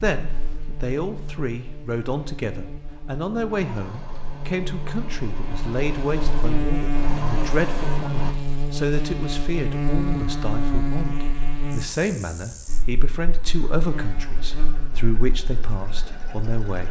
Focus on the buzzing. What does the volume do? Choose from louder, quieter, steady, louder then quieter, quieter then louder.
louder then quieter.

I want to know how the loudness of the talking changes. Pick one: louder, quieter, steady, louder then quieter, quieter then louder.
steady.